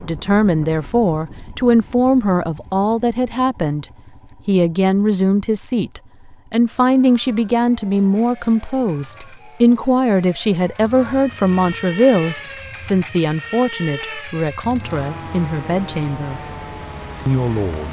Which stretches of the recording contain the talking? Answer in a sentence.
The talking can be heard from 0.0 to 3.9 s, from 4.5 to 16.4 s and from 17.2 to 17.8 s.